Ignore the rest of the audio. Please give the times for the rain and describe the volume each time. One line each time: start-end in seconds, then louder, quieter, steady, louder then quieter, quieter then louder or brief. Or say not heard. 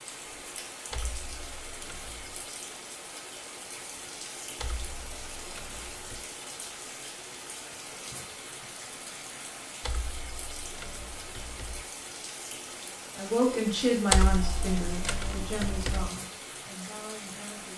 0.0-17.7 steady.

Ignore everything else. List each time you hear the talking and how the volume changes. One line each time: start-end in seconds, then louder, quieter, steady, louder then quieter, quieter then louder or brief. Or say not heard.
13.2-17.7 quieter.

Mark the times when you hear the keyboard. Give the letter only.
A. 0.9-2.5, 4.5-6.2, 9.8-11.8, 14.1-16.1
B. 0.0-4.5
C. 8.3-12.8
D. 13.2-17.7
A.